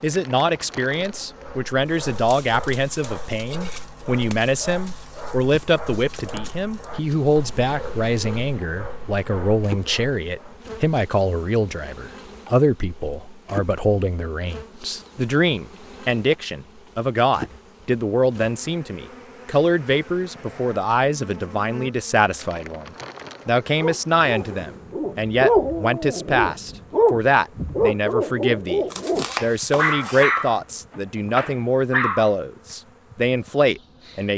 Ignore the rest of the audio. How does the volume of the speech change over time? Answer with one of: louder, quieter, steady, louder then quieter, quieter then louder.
steady.